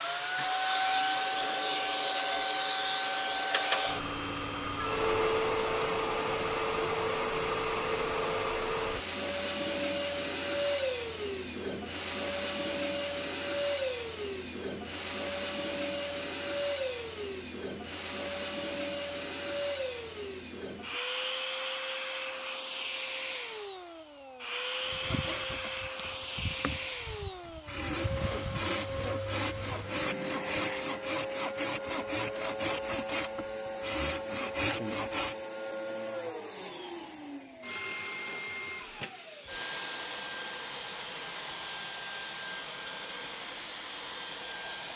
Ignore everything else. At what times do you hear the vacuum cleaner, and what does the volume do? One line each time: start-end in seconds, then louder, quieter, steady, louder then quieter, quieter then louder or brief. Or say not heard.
0.0-44.9 quieter.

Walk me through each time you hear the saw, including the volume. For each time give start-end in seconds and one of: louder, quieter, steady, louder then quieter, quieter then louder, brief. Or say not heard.
24.8-35.4 louder.